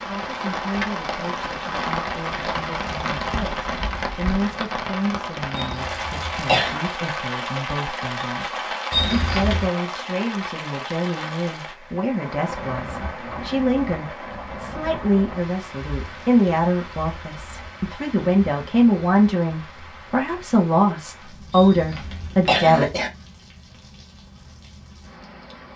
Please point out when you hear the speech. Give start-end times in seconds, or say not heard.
0.1-22.9.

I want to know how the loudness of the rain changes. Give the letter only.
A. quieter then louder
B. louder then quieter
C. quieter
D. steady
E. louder
C.